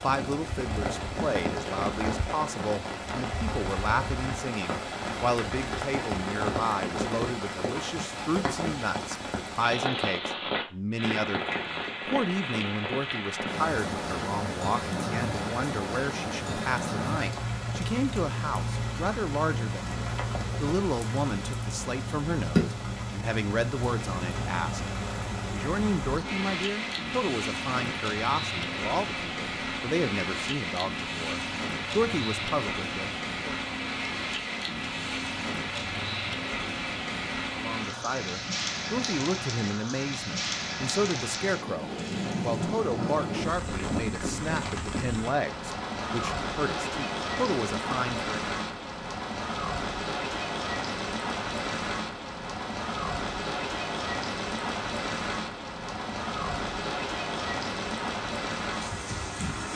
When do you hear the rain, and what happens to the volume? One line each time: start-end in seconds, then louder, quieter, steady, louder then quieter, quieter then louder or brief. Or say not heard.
0.0-59.7 steady.